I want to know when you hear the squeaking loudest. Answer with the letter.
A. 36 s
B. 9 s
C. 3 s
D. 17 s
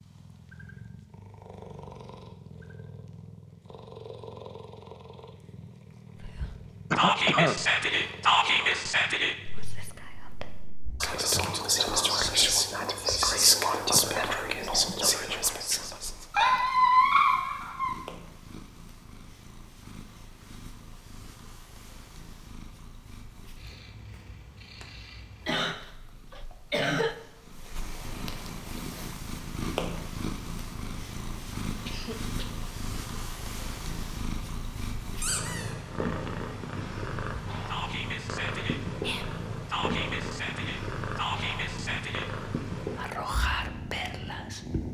D.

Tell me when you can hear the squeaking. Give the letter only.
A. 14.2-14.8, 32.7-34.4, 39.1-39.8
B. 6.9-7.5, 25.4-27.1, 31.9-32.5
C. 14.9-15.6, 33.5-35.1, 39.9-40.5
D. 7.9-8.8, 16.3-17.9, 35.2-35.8
D.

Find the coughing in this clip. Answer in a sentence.
You can hear the coughing from 6.9 to 7.5 s, from 25.4 to 27.1 s and from 31.9 to 32.5 s.